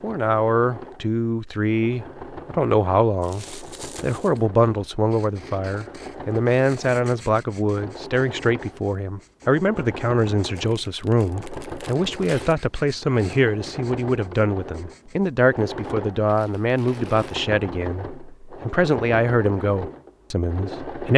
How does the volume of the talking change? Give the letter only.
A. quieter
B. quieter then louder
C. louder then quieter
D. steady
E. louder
D.